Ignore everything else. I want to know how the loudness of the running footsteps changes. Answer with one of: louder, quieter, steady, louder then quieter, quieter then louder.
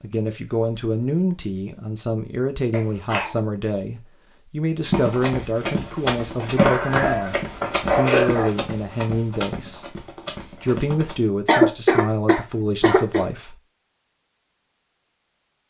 quieter.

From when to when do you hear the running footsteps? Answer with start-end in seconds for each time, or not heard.
4.8-11.2.